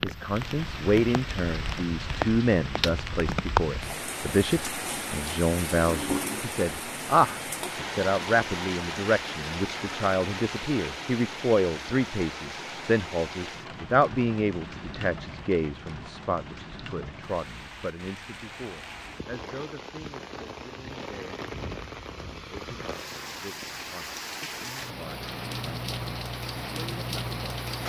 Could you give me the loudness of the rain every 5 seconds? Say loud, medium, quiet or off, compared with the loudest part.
loud, loud, medium, medium, medium, loud.